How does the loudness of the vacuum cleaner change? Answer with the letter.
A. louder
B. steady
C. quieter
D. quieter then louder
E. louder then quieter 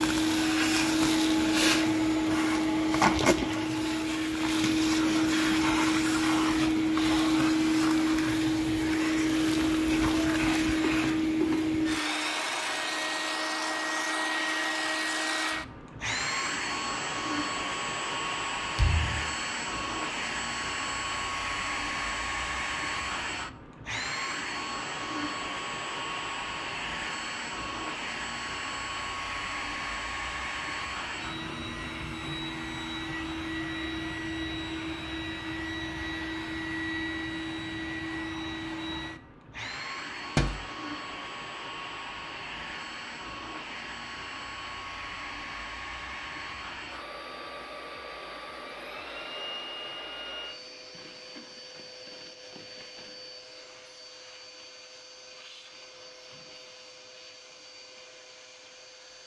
C.